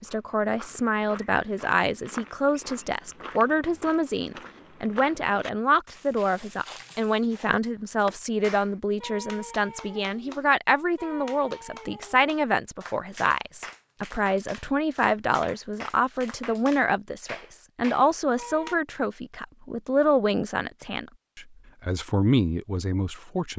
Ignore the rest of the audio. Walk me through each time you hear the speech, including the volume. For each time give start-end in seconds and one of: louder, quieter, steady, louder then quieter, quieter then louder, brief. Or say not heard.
0.0-23.5 steady.